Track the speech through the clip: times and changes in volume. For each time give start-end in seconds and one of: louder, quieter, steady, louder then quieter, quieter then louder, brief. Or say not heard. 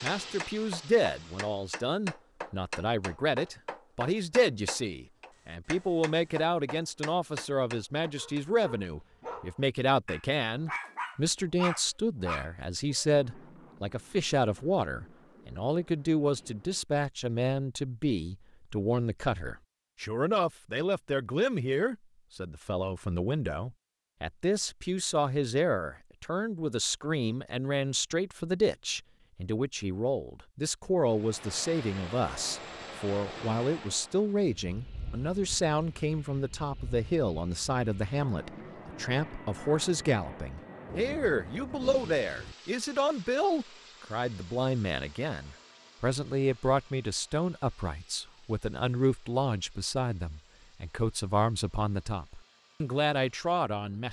0.0-54.0 steady.